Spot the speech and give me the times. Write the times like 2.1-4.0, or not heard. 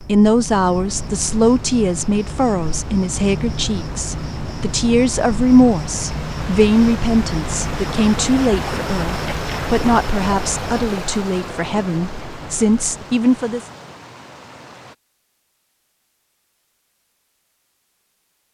0.1-13.7.